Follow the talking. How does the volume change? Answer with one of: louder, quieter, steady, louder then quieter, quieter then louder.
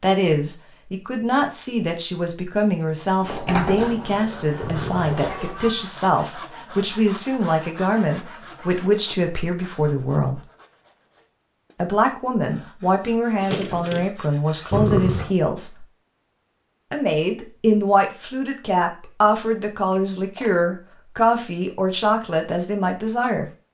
steady.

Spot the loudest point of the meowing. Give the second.
15 s.